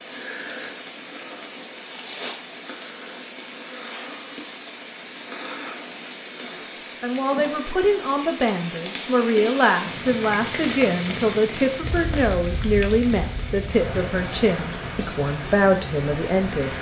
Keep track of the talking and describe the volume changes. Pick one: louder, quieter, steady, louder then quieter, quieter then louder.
steady.